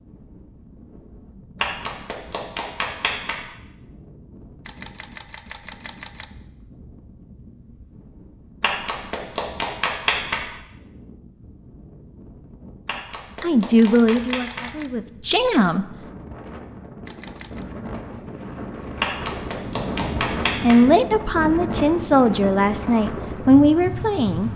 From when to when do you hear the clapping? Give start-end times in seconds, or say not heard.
1.6-3.5, 8.6-10.4, 12.8-14.7, 19.0-20.9.